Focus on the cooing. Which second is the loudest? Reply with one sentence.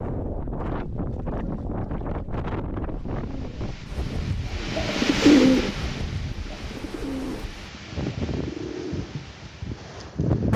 The volume of the cooing peaks at 5 seconds.